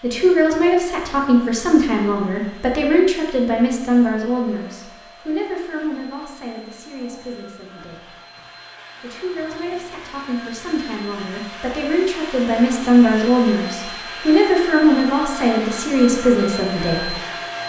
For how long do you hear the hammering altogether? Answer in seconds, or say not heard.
not heard.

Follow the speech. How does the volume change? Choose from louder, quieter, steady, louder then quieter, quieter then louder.
quieter then louder.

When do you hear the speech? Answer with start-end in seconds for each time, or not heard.
0.0-8.2, 9.0-17.1.